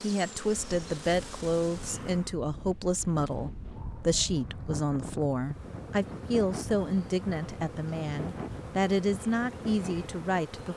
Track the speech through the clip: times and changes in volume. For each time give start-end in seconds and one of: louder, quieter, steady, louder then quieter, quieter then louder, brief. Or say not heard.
0.0-10.7 steady.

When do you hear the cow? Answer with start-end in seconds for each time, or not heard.
not heard.